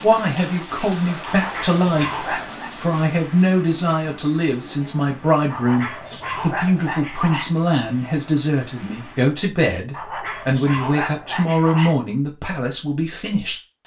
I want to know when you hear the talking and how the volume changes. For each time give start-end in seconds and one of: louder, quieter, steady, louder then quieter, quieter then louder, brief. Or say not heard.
0.0-13.8 steady.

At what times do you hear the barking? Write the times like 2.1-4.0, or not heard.
1.2-2.8, 5.5-7.5, 9.9-11.9.